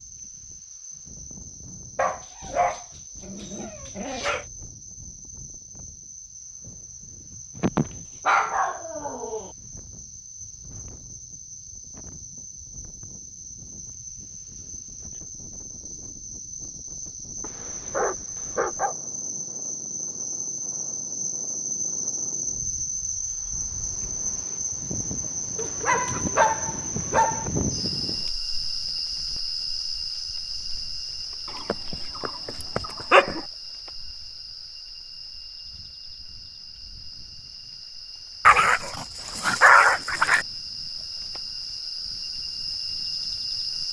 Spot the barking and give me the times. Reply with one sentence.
You can hear the barking from 1.9 to 4.5 s, from 7.5 to 9.5 s, from 17.4 to 18.9 s, from 25.6 to 27.5 s, from 31.6 to 33.4 s and from 38.5 to 40.5 s.